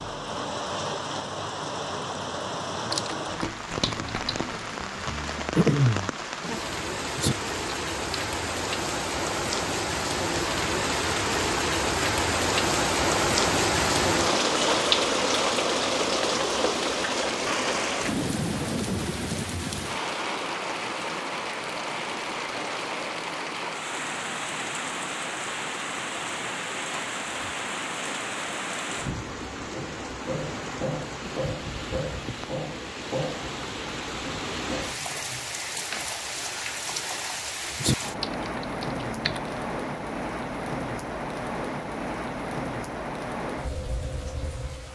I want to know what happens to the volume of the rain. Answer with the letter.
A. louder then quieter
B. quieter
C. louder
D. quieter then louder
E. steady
A.